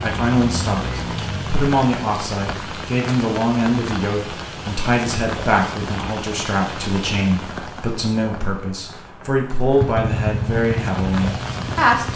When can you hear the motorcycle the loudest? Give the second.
10 s.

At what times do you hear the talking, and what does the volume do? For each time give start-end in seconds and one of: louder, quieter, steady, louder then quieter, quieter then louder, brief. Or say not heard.
0.0-12.1 steady.